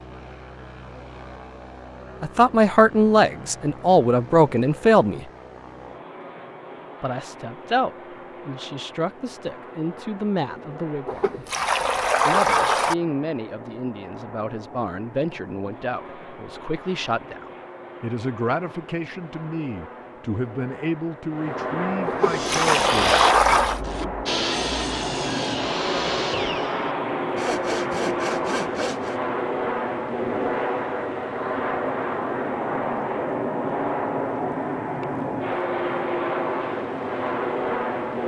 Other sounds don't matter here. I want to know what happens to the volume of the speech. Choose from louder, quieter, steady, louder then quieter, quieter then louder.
quieter.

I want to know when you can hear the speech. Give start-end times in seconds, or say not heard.
2.2-5.2, 7.0-11.4, 12.2-23.6.